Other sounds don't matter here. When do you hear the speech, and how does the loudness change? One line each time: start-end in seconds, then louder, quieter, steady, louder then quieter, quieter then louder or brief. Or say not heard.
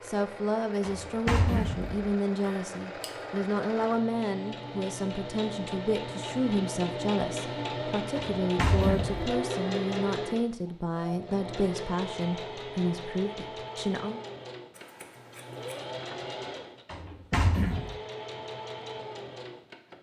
0.0-14.2 steady.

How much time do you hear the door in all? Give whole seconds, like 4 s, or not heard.
3 s.